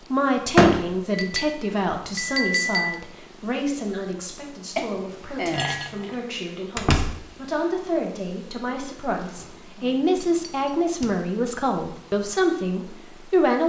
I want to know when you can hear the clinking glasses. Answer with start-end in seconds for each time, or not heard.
1.1-3.0, 4.8-6.2, 10.2-10.8.